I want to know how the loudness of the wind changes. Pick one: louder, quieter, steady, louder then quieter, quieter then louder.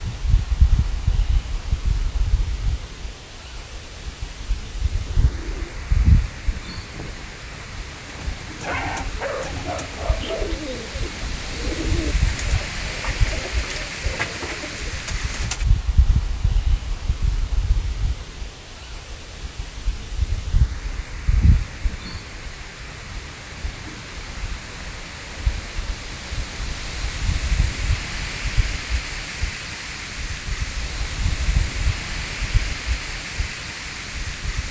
steady.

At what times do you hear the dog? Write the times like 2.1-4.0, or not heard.
8.7-10.6.